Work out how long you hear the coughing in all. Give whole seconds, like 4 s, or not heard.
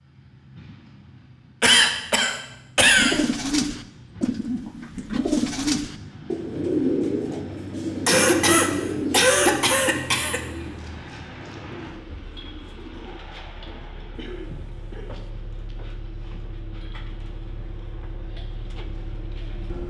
5 s.